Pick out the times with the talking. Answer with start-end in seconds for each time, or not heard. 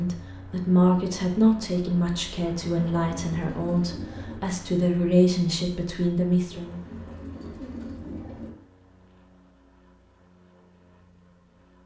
0.0-6.8.